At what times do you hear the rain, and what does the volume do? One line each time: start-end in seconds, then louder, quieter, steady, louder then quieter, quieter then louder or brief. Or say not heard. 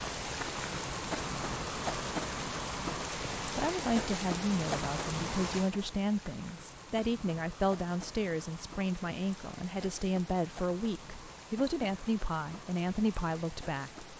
0.0-14.1 quieter.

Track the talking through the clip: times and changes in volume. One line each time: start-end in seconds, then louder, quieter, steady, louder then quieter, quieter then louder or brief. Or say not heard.
3.5-14.1 steady.